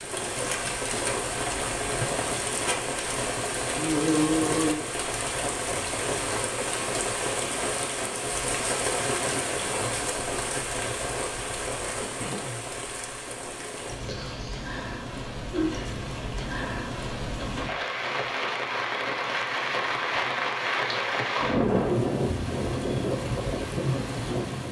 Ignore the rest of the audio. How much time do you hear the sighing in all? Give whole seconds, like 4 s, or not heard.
3 s.